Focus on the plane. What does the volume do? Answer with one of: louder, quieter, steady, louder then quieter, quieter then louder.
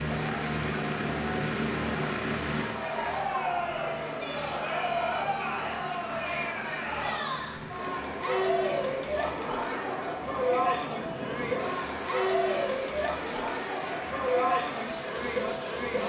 quieter.